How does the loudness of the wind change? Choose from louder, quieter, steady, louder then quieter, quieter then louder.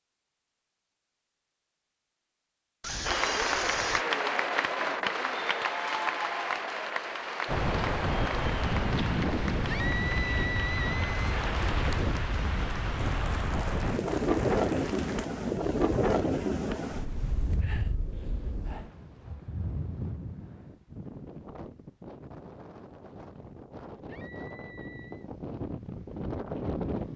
quieter.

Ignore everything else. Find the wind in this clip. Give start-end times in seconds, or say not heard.
7.5-27.1.